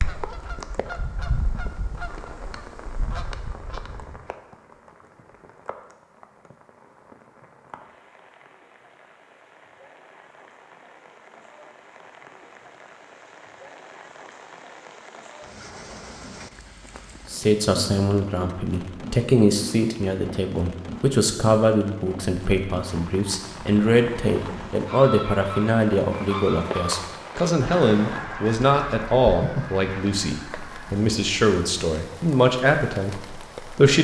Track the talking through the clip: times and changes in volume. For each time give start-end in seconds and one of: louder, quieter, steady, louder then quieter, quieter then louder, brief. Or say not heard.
17.3-33.9 steady.